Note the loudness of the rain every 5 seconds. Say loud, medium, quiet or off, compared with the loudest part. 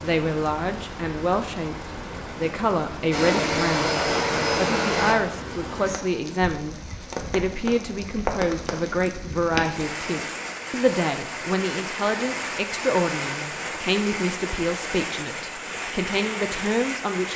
medium, loud, loud, loud.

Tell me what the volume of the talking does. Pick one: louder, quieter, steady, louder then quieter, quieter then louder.
steady.